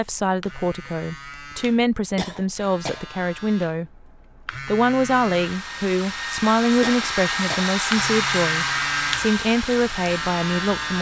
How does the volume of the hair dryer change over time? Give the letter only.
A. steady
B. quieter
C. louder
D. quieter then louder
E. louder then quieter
E.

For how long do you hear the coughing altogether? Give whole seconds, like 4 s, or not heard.
2 s.